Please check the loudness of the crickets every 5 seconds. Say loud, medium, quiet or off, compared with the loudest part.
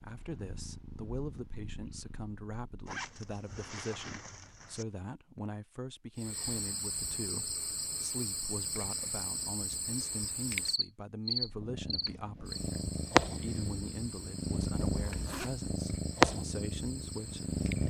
off, loud, loud, medium.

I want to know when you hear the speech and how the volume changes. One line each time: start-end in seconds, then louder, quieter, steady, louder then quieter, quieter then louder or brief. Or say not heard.
0.0-17.6 steady.